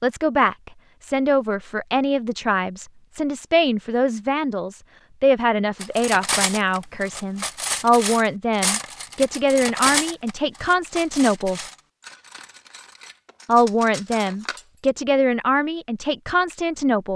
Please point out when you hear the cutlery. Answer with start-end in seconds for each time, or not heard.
5.8-14.9.